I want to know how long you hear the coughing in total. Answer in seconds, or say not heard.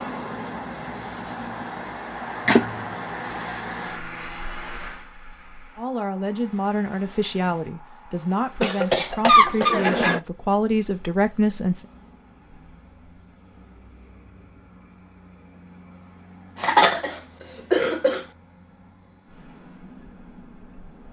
4 s.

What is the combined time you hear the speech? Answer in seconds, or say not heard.
6 s.